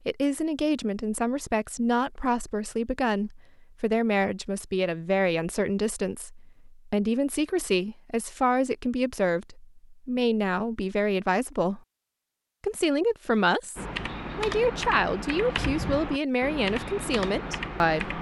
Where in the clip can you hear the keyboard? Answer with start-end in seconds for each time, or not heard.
13.8-18.1.